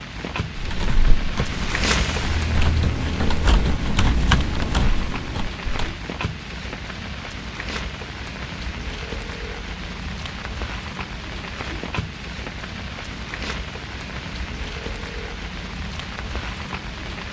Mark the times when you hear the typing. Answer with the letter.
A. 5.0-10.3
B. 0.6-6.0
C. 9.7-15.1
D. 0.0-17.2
B.